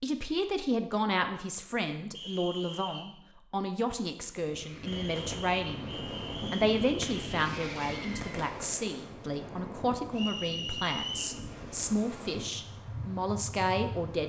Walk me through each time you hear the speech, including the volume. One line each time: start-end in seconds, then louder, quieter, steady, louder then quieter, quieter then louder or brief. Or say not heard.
0.0-14.2 steady.